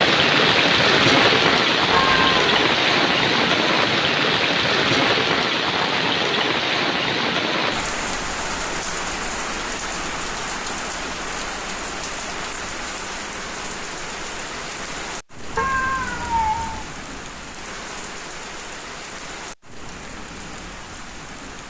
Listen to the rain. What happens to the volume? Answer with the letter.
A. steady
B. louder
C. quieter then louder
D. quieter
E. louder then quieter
D.